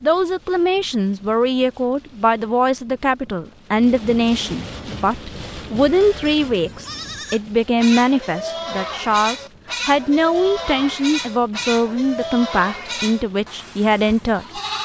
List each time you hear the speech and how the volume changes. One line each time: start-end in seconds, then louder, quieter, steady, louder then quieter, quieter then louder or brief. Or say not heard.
0.0-14.6 steady.